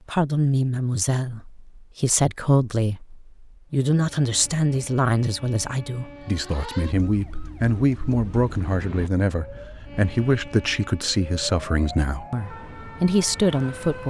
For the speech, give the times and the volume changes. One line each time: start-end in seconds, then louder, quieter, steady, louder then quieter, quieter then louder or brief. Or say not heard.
0.1-14.0 steady.